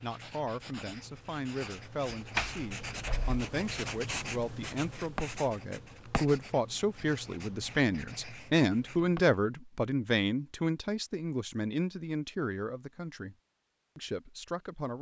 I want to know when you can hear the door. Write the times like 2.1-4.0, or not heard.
2.4-3.5.